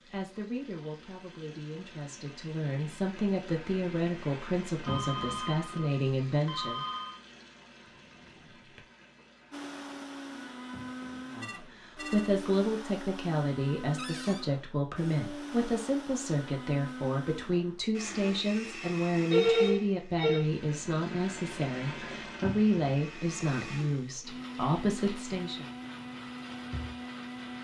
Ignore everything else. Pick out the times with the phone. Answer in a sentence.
The phone can be heard from 4.8 to 7.2 s, from 11.4 to 12.3 s and from 19.3 to 20.4 s.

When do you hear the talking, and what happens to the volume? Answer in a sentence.
You can hear the talking from 0.1 to 6.8 s, getting louder; and from 11.3 to 25.6 s, at a steady volume.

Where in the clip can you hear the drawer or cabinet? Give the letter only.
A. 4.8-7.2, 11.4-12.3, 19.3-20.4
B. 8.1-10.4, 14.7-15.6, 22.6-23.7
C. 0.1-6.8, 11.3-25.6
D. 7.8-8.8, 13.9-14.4
D.